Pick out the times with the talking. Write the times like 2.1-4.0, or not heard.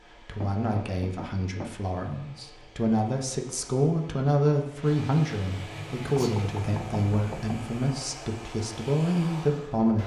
0.1-10.0.